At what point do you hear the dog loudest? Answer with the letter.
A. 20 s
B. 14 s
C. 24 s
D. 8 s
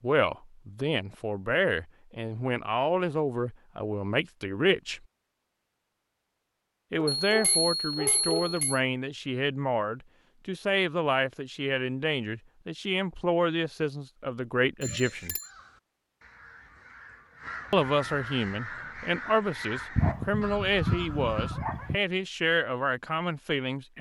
A.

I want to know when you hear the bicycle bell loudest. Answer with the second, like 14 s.
8 s.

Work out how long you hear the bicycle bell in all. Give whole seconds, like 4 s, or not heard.
2 s.